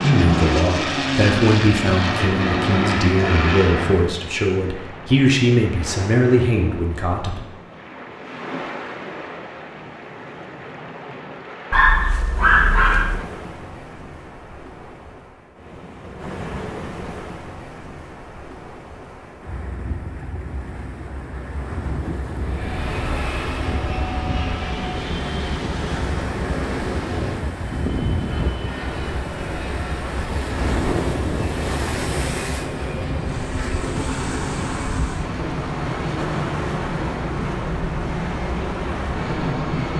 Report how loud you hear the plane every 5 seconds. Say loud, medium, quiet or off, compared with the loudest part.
loud, off, off, off, medium, medium, medium, medium.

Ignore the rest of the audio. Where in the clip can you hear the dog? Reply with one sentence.
The dog can be heard from 11.7 to 13.2 s.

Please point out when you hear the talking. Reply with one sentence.
You can hear the talking from 0.0 to 7.4 s.